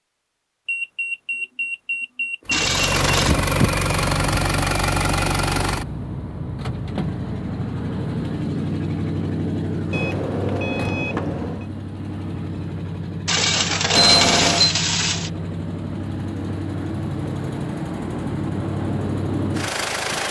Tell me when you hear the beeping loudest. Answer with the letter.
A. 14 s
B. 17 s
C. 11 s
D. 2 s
A.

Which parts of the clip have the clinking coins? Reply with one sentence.
You can hear the clinking coins from 2.5 to 3.4 s and from 13.2 to 15.3 s.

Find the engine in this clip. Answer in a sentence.
You can hear the engine from 2.5 to 20.2 s.